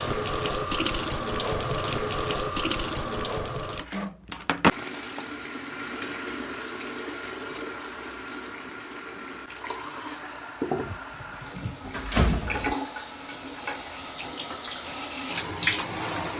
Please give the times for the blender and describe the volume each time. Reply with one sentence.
The blender can't be heard in this clip.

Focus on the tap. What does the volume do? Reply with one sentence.
The loudness of the tap goes down, then up.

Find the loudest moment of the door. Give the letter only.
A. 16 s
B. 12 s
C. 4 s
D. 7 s
B.